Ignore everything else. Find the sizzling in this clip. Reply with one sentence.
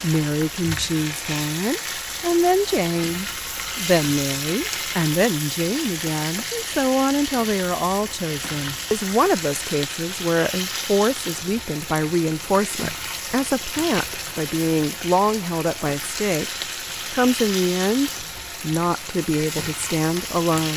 The sizzling can be heard from 0.0 to 20.7 s.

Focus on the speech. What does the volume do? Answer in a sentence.
The loudness of the speech stays about the same.